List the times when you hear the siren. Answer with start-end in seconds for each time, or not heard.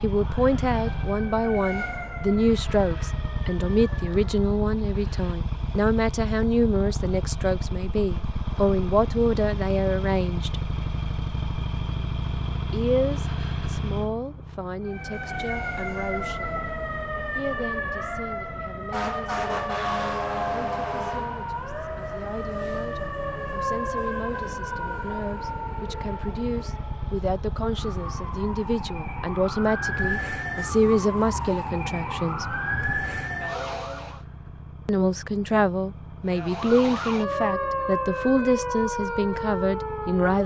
0.0-4.5, 14.8-34.2, 36.2-40.4.